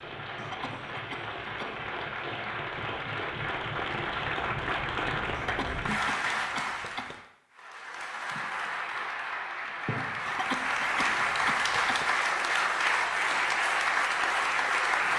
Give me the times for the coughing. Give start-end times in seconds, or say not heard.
0.3-2.0, 5.3-7.2, 10.2-12.2.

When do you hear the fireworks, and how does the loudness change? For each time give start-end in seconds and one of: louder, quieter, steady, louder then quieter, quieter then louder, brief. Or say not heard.
not heard.